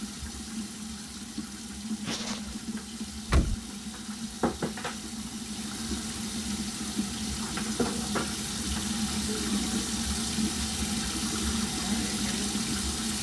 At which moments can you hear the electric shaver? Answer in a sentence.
The electric shaver can't be heard in this clip.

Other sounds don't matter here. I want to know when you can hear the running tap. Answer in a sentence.
You can hear the running tap from 0.0 to 13.1 s.